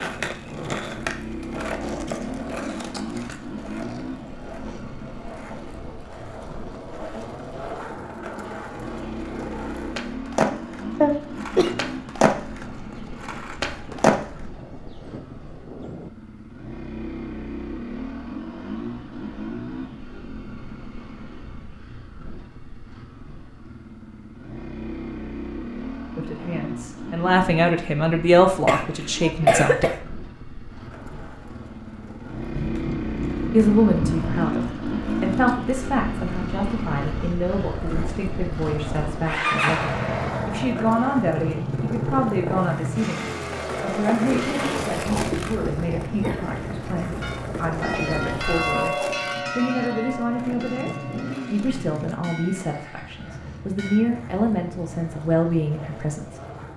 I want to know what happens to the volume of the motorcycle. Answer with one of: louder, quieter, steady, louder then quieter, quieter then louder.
louder then quieter.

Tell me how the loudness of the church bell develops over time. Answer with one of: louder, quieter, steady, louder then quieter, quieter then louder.
quieter.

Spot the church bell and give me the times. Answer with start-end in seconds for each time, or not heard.
47.0-54.0.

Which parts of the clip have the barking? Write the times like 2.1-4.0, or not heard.
not heard.